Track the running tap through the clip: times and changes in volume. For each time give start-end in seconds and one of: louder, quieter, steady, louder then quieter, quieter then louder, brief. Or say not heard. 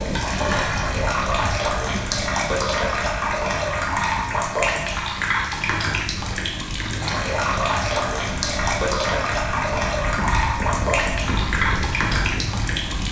0.0-13.0 steady.